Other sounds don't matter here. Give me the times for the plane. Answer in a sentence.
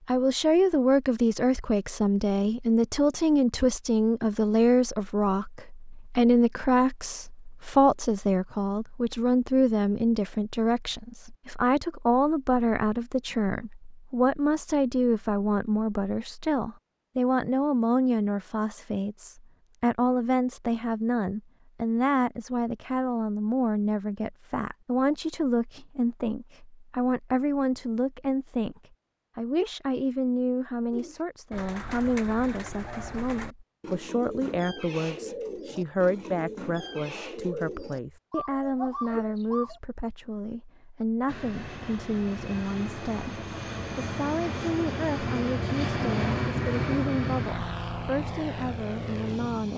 The plane can be heard from 41.2 to 49.7 s.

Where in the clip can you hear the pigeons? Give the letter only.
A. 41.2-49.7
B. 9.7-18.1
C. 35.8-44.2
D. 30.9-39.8
D.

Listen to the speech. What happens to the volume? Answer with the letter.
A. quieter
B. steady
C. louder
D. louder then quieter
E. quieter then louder
A.